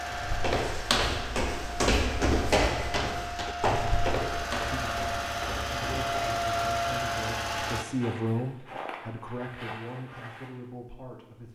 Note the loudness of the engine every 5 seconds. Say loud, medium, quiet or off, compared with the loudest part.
medium, loud, off.